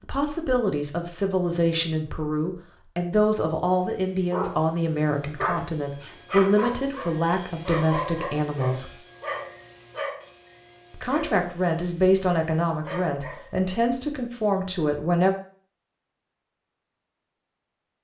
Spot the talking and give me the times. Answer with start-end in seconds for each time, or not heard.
0.1-8.9, 10.9-15.3.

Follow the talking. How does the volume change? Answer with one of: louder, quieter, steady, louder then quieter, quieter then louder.
steady.